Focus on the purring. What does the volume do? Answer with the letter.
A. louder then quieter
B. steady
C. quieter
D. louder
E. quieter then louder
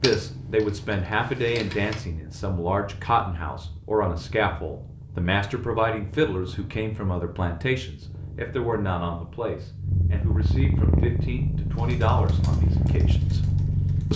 D.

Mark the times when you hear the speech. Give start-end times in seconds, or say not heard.
0.0-13.4.